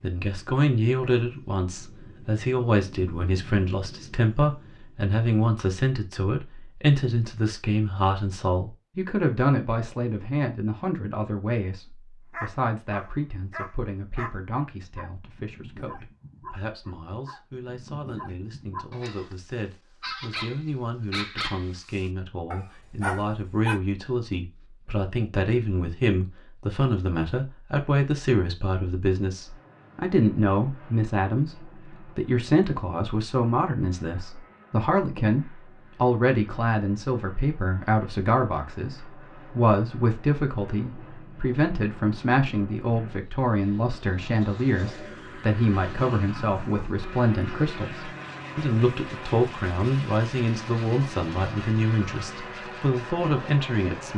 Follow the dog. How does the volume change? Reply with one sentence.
The volume of the dog goes down, then up.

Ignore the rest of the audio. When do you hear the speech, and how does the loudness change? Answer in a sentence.
The speech can be heard from 0.0 to 54.1 s, getting quieter then louder.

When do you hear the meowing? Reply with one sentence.
You can't hear the meowing here.